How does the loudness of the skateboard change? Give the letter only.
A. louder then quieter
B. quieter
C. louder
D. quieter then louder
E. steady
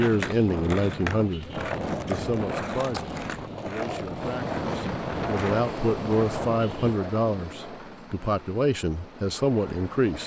B.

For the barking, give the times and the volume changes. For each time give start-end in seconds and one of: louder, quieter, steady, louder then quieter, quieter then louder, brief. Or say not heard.
not heard.